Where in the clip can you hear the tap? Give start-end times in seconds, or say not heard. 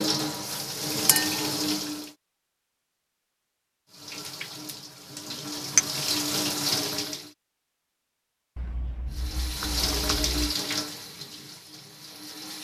0.0-2.1, 3.9-7.3, 9.1-12.5.